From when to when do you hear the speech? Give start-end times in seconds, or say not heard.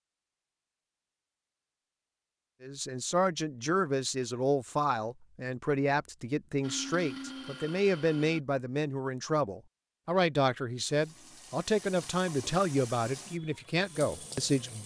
2.6-14.8.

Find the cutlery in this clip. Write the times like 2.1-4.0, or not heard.
not heard.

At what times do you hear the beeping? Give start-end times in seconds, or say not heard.
not heard.